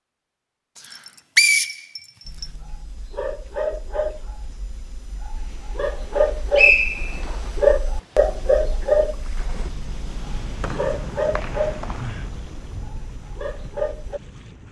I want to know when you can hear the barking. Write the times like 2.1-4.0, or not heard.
2.2-14.2.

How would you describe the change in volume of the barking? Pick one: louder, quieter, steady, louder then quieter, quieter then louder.
louder then quieter.